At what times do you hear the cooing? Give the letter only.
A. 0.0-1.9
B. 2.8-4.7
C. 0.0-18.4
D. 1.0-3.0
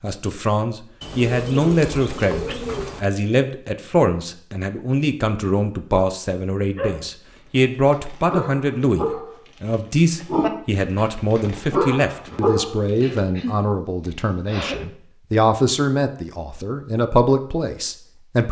D.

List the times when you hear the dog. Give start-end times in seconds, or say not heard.
6.8-13.2.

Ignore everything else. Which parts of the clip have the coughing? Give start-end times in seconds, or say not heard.
13.0-14.9.